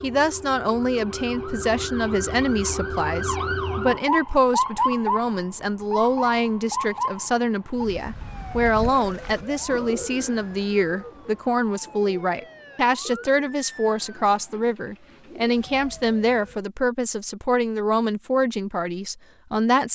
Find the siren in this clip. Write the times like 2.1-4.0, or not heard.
0.0-16.6.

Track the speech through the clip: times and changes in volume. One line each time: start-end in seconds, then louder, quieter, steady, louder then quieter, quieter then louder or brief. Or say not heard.
0.0-19.9 steady.